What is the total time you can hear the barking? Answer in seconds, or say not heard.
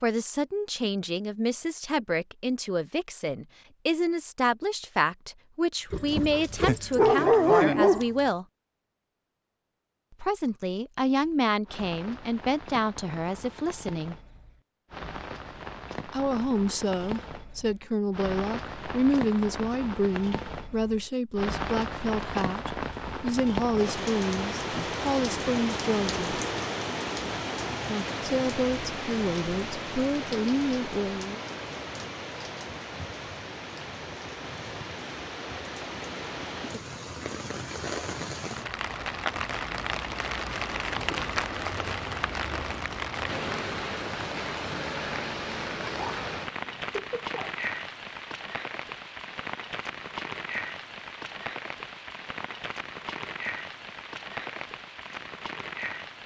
4 s.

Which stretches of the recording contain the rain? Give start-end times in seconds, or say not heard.
11.2-56.2.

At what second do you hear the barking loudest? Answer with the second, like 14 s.
7 s.